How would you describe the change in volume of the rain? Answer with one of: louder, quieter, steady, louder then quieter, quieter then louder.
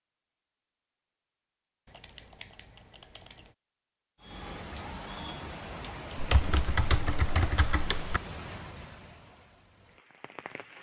quieter.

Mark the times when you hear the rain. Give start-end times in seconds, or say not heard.
4.2-10.7.